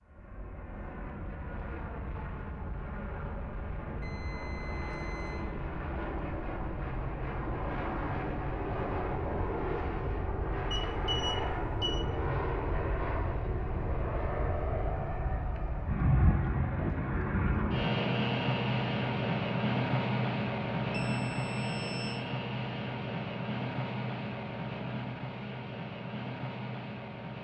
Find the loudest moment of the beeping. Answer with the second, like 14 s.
11 s.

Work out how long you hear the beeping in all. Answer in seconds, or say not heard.
4 s.